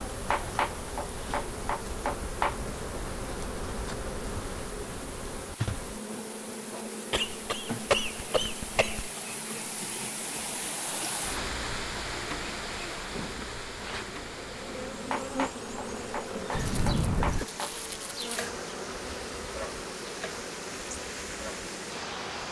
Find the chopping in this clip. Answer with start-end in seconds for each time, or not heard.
0.3-2.6, 15.1-17.8.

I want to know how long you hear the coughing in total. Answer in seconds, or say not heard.
3 s.